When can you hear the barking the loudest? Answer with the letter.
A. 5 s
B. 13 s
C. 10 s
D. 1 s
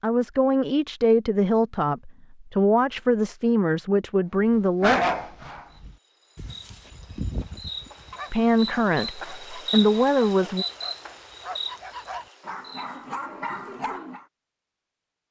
A.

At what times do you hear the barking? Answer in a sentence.
The barking can be heard from 4.8 to 14.2 s.